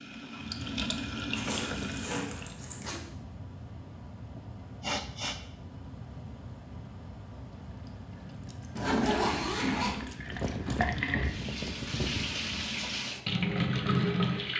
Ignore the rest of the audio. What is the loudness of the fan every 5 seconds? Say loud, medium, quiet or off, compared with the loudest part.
medium, medium, loud.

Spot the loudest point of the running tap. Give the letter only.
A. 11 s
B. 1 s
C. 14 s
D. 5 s
C.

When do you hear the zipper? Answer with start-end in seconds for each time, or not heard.
1.4-3.0, 8.8-10.1.